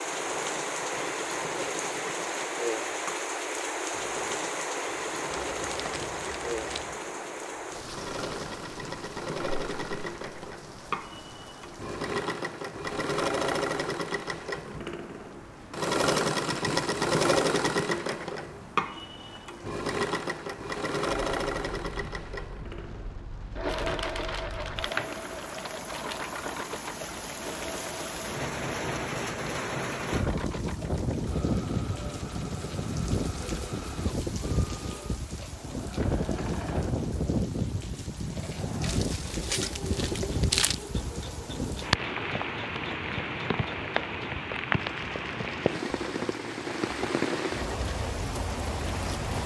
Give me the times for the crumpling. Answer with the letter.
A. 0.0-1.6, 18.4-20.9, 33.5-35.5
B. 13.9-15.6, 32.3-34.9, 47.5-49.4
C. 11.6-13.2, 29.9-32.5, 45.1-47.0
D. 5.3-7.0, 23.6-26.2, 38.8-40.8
D.